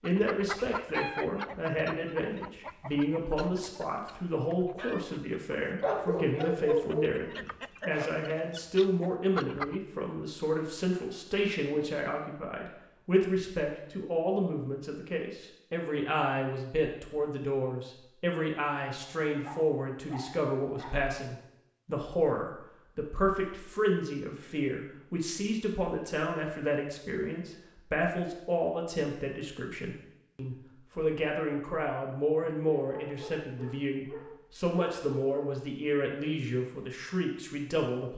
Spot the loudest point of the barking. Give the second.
7 s.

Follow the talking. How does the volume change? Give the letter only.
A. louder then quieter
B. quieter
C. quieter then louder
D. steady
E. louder
D.